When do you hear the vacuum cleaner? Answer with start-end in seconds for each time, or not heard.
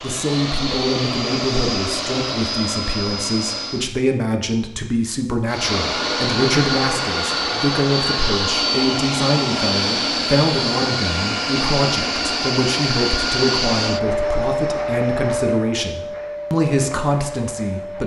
0.0-3.9, 5.5-18.0.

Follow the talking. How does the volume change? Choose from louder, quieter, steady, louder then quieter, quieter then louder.
steady.